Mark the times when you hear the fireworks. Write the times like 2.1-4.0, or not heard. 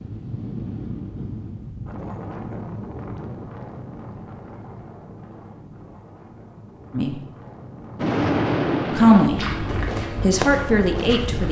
8.0-11.2.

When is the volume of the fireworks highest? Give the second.
8 s.